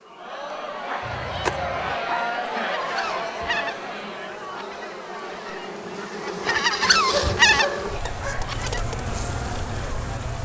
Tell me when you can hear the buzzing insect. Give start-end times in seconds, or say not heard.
0.0-10.4.